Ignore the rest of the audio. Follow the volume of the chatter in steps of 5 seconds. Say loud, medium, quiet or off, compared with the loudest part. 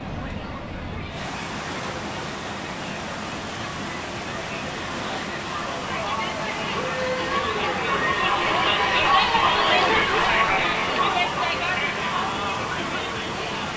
quiet, loud, loud.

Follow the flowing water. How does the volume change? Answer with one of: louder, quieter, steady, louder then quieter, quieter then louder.
steady.